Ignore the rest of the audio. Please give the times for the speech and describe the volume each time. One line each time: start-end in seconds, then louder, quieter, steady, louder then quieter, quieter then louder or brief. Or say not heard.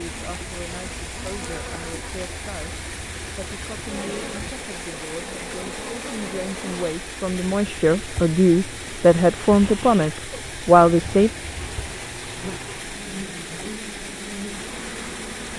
0.0-11.3 louder.